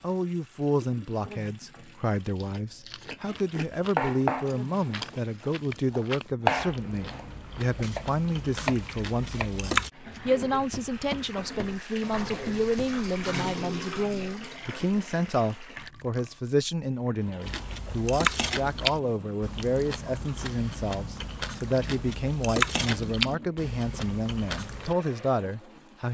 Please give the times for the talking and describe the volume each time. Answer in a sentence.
You can hear the talking from 0.0 to 26.1 s, at a steady volume.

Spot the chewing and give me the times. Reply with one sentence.
The chewing can be heard from 2.4 to 9.9 s and from 17.4 to 24.9 s.